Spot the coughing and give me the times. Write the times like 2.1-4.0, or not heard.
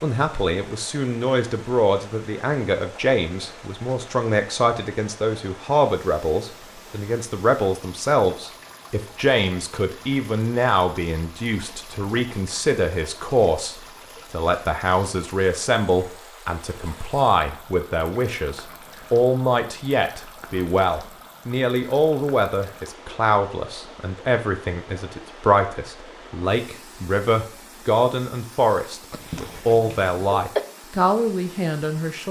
29.1-30.6.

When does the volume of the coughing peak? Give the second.
30 s.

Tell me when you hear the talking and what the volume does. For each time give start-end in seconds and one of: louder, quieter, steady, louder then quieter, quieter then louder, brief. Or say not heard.
0.0-32.2 steady.